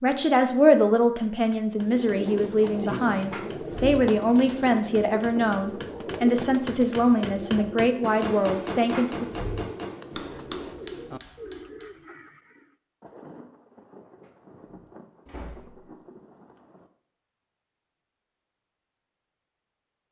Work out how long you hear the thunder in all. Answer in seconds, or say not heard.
4 s.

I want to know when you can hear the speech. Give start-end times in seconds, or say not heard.
0.0-9.2.